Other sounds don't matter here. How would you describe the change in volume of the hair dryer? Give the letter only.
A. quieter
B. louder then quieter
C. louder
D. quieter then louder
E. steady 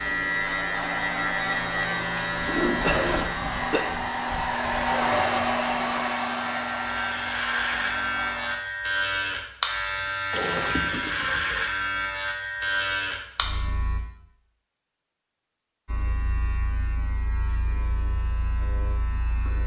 B.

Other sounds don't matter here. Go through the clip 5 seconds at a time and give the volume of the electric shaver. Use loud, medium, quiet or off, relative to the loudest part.
loud, loud, loud, quiet.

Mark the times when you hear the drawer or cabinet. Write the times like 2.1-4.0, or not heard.
not heard.